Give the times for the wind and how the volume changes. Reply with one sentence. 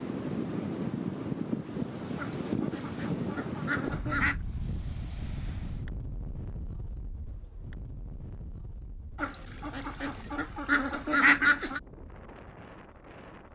The wind can be heard from 0.0 to 13.5 s, getting quieter.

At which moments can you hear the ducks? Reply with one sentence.
The ducks can be heard from 2.1 to 4.4 s and from 9.2 to 11.8 s.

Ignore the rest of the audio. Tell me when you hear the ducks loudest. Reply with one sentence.
The loudest moment of the ducks is at 11 seconds.